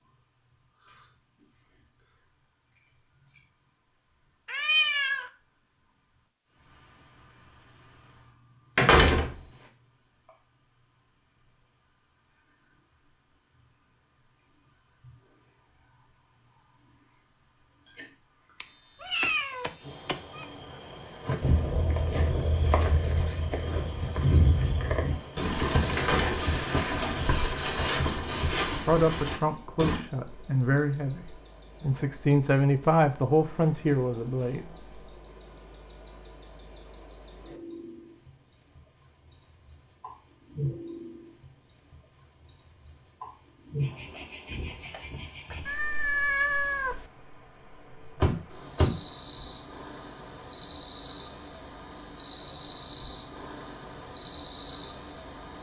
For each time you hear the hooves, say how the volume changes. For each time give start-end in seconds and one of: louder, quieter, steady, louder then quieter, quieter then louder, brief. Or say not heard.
21.2-30.0 steady.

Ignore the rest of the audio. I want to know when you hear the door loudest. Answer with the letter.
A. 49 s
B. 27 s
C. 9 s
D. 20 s
C.